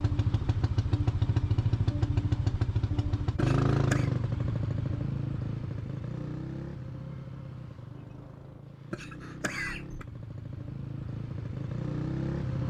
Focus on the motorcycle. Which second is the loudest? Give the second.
4 s.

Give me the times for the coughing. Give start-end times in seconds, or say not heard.
3.4-4.1, 8.9-10.1.